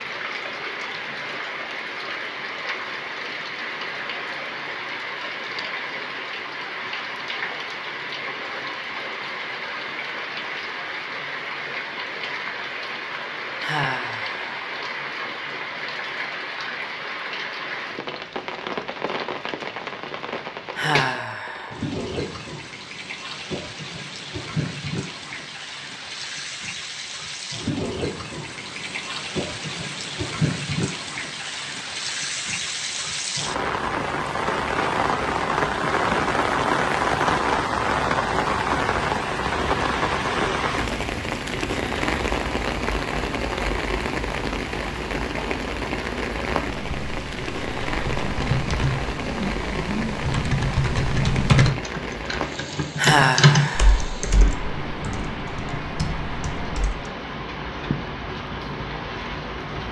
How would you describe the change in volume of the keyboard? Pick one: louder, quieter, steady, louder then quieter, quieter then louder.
louder then quieter.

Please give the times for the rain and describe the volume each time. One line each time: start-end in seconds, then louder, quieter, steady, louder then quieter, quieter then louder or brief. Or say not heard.
0.0-59.8 louder then quieter.